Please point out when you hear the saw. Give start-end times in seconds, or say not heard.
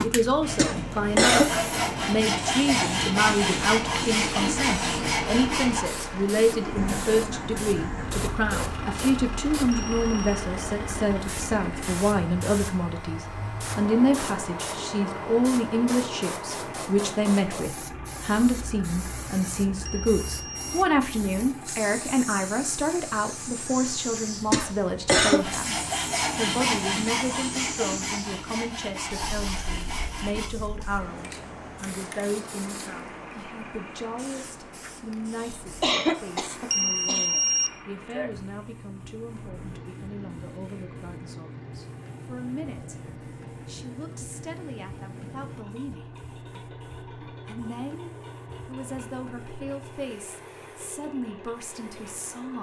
0.4-5.8, 25.2-30.5.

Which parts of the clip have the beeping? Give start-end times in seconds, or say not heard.
9.7-10.2, 19.9-20.9, 36.7-37.8.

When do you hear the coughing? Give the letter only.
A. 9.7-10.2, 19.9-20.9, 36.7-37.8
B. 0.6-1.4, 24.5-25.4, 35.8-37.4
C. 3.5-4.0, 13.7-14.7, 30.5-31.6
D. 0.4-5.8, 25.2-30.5
B.